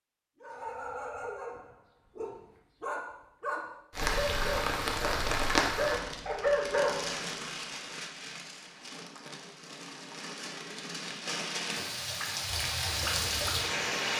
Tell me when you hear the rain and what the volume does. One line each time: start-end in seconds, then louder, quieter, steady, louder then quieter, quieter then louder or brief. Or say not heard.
3.9-14.1 quieter then louder.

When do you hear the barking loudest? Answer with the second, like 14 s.
7 s.